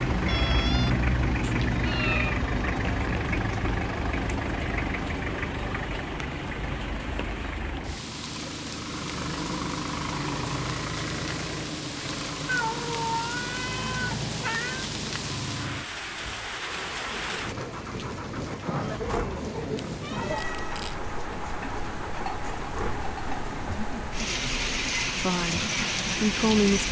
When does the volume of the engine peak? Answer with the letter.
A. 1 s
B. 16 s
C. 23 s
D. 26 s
A.